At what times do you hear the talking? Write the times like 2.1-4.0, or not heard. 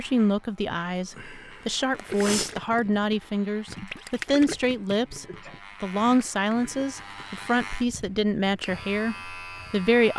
0.0-10.1.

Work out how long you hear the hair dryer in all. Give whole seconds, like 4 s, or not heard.
not heard.